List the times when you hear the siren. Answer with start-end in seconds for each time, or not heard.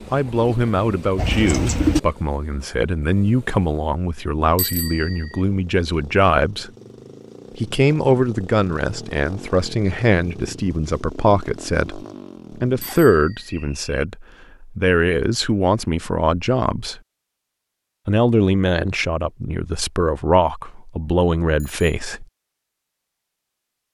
not heard.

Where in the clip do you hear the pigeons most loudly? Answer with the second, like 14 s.
2 s.